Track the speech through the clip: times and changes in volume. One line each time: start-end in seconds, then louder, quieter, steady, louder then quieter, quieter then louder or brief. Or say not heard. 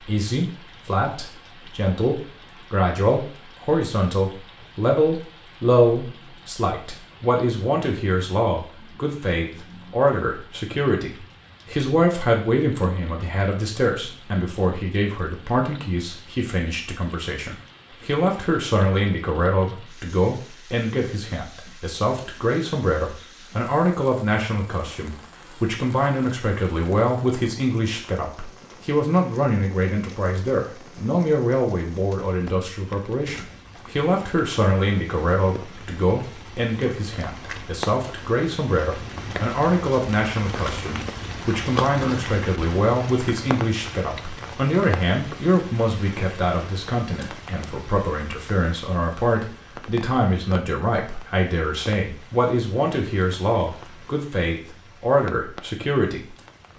0.0-56.4 steady.